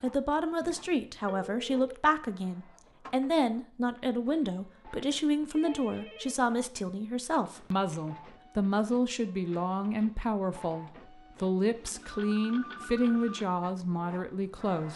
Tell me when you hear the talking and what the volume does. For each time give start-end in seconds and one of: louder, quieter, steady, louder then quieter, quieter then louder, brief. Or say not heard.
0.0-14.9 steady.